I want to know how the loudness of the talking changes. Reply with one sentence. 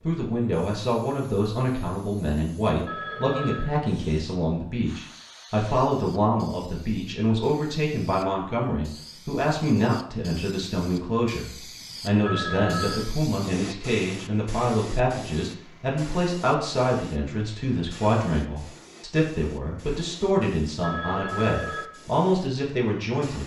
The loudness of the talking stays about the same.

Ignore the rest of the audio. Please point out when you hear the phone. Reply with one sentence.
The phone can be heard from 2.9 to 3.8 s, from 12.2 to 13.1 s and from 20.8 to 21.9 s.